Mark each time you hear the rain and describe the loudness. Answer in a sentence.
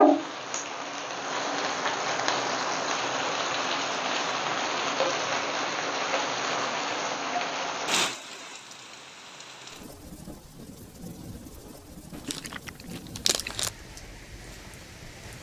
The rain can be heard from 0.0 to 15.3 s, getting quieter.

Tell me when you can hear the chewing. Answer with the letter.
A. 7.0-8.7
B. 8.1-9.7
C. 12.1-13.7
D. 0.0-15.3
C.